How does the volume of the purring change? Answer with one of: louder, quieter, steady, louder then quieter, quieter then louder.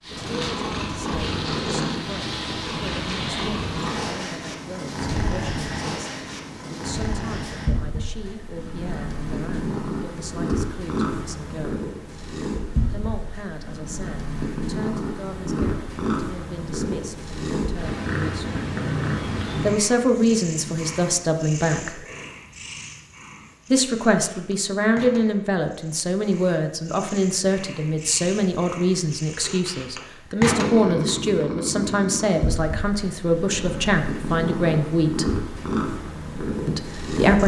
quieter then louder.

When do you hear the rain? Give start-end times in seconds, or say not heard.
not heard.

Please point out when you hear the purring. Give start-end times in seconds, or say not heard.
0.0-37.4.